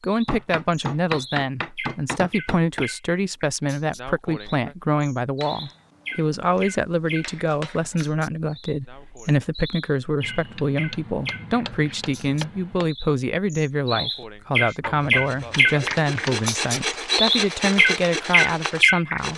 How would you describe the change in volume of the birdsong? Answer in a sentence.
The volume of the birdsong goes up.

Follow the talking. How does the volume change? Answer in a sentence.
The loudness of the talking stays about the same.